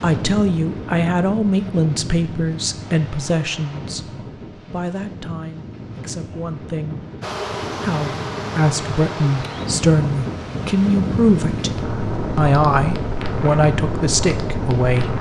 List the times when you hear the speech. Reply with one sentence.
The speech can be heard from 0.0 to 7.0 s, from 7.8 to 11.7 s and from 12.3 to 15.1 s.